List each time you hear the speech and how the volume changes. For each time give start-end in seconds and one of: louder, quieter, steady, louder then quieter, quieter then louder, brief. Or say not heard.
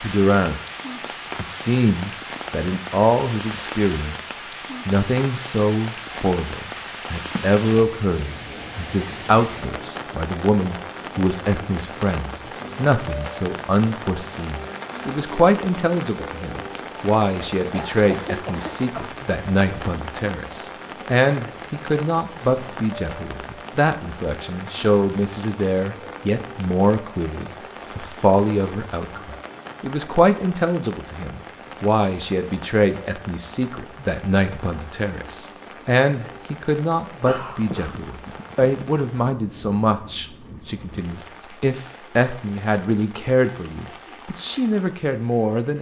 0.0-45.7 steady.